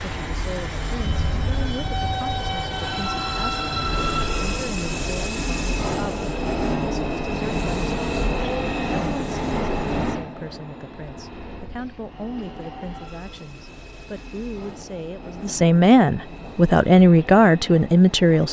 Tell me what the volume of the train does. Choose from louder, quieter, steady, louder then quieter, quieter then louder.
quieter.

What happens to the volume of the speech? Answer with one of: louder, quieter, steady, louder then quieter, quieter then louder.
louder.